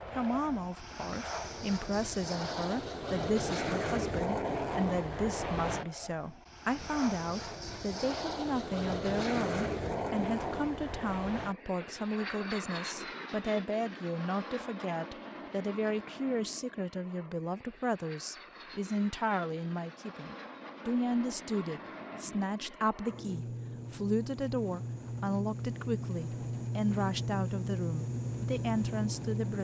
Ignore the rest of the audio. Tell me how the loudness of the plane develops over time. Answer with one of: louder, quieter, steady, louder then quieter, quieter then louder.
quieter then louder.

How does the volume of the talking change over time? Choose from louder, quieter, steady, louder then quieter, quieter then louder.
steady.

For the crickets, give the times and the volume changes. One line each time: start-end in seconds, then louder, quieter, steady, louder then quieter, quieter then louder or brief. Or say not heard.
not heard.